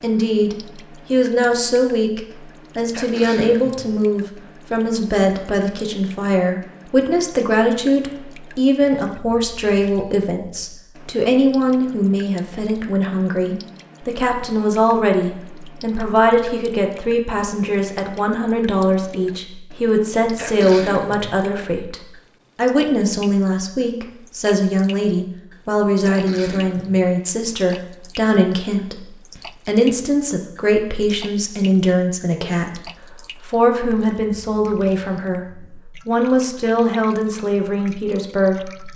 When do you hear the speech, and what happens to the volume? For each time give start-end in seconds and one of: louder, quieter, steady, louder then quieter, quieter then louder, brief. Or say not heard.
0.0-38.9 steady.